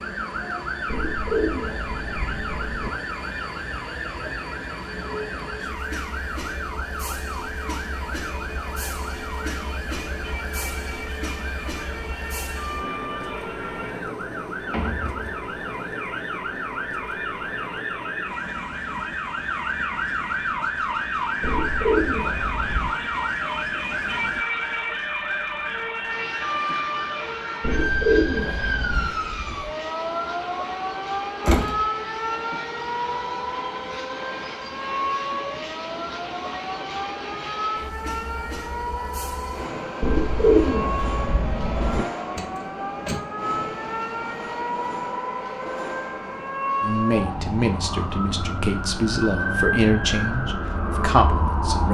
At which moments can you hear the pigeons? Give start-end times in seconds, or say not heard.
0.8-2.9, 21.4-22.9, 27.6-29.1, 40.0-42.0.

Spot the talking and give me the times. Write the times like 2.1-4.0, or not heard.
46.8-51.8.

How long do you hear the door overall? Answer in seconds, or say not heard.
2 s.